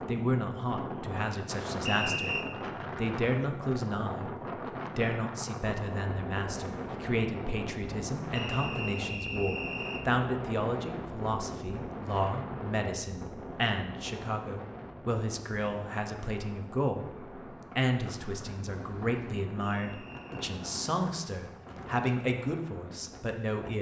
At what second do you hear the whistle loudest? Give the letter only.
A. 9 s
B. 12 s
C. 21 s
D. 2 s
D.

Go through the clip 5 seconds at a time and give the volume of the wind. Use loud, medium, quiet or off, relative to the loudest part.
loud, loud, loud, medium, medium.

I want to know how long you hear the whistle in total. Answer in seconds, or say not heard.
3 s.